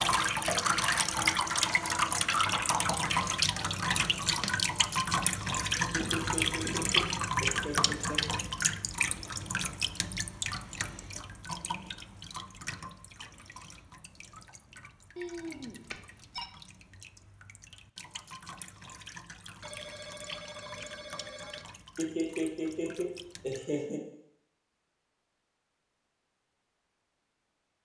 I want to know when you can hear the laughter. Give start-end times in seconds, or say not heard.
5.9-8.3, 21.9-24.0.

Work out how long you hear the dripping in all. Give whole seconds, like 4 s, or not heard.
24 s.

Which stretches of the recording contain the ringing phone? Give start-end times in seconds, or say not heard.
5.8-7.1, 15.2-16.5, 19.6-21.6.